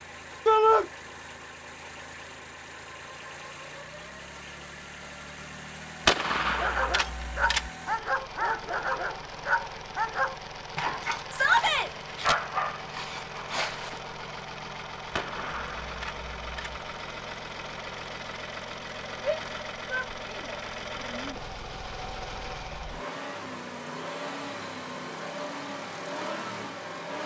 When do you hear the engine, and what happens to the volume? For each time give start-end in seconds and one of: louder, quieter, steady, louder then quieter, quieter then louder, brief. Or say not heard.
0.0-27.2 louder.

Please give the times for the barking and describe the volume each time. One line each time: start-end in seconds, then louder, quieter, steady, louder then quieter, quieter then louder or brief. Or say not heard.
6.5-14.0 quieter then louder.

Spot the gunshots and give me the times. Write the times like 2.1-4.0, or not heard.
6.0-7.7, 15.1-16.8.